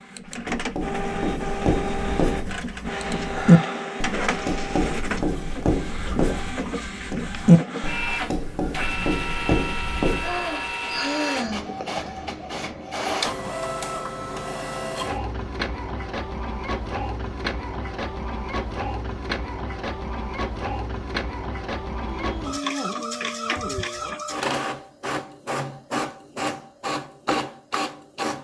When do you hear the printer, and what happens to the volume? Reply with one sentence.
You can hear the printer from 0.0 to 28.3 s, at a steady volume.